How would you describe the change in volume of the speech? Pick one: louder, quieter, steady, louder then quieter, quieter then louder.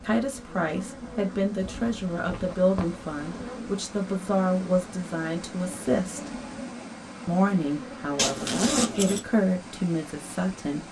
steady.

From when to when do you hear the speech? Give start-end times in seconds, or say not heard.
0.0-6.3, 7.2-10.8.